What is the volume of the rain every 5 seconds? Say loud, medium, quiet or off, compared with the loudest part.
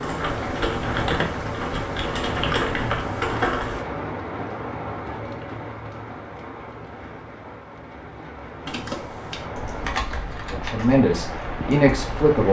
loud, medium, loud.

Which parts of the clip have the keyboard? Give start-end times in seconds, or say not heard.
0.0-3.9, 8.7-12.4.